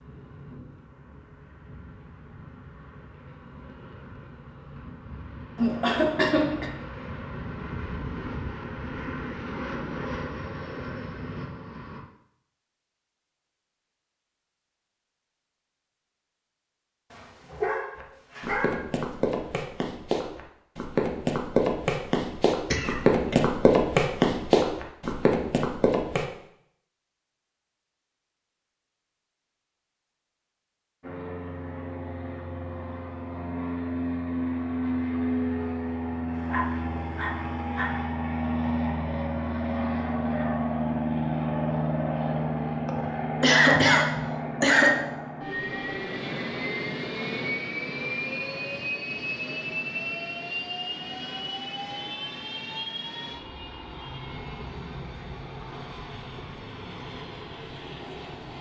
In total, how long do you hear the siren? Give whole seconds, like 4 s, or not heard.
not heard.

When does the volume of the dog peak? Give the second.
18 s.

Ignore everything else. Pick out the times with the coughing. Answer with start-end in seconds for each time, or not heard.
5.5-6.7, 22.7-23.4, 42.9-45.0.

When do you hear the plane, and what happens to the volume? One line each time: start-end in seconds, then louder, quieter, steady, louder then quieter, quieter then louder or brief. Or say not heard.
0.0-12.0 louder
31.0-58.5 quieter.